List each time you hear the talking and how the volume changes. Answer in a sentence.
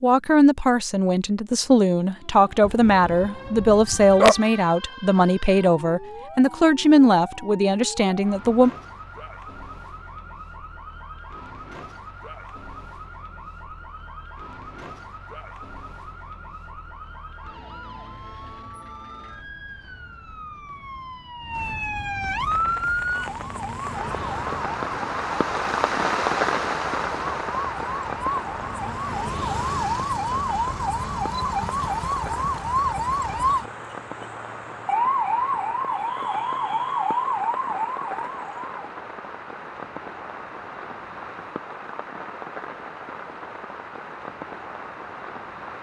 The talking can be heard from 0.0 to 8.7 s, at a steady volume.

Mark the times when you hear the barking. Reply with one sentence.
The barking can be heard from 2.6 to 4.3 s.